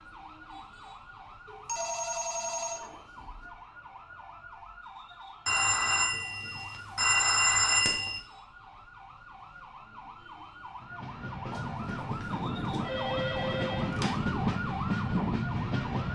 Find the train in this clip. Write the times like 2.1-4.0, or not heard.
10.8-16.1.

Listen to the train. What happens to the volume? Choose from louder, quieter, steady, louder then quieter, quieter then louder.
louder.